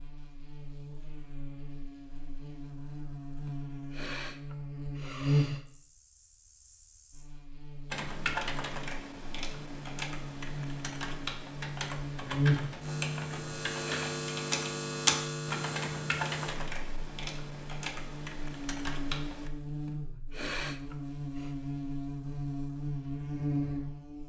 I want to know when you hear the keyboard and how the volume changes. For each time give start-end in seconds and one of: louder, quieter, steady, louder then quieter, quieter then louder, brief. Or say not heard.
7.9-19.5 louder then quieter.